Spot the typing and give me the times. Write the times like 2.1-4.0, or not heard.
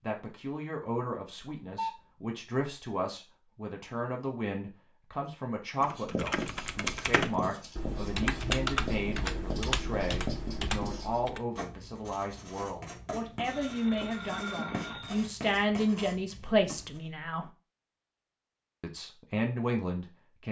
5.8-11.4.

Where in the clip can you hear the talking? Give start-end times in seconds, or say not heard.
0.0-17.5, 18.8-20.4.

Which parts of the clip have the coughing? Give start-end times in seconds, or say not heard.
not heard.